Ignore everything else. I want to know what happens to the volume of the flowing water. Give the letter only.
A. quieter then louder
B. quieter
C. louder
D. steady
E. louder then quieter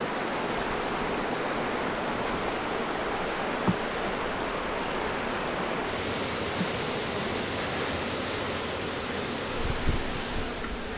D.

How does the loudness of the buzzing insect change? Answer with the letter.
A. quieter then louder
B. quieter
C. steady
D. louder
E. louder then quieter
C.